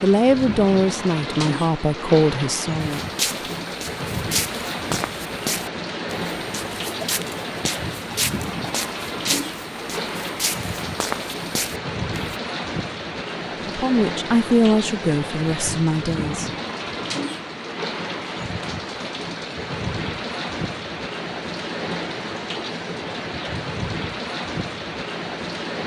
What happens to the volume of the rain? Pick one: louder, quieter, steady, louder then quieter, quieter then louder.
steady.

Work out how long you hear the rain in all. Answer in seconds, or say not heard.
26 s.